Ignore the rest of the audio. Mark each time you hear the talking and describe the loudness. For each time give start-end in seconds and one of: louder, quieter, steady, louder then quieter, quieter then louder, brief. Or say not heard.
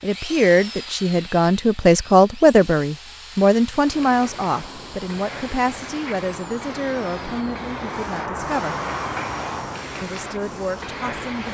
0.0-8.8 quieter
10.0-11.5 brief.